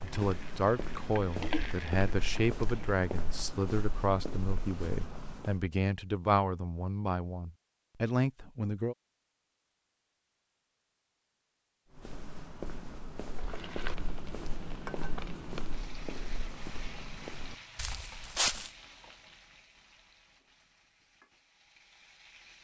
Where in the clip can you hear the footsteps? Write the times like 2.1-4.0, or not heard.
0.0-5.6, 11.9-18.7.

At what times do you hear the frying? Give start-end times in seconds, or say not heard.
0.0-3.0, 13.3-22.6.